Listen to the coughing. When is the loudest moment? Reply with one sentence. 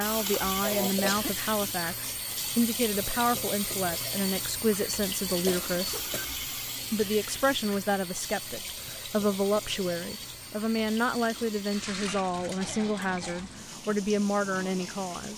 The volume of the coughing peaks at 1 second.